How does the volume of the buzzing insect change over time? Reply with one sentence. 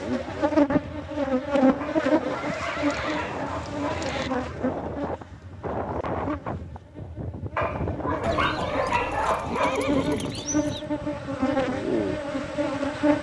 The loudness of the buzzing insect goes down, then up.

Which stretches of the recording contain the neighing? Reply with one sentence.
You can hear the neighing from 2.2 to 4.3 s and from 8.2 to 10.8 s.